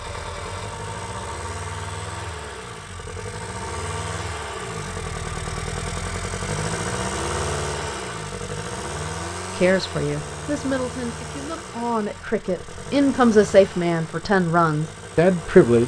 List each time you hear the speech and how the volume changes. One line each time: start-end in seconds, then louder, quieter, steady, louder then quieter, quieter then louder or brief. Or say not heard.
9.6-15.8 louder.